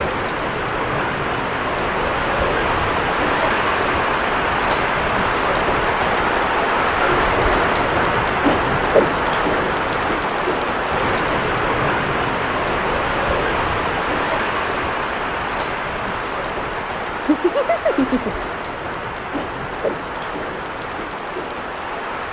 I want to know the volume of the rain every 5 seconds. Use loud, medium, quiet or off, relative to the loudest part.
loud, loud, loud, medium, medium.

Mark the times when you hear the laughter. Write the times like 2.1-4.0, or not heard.
16.8-18.4.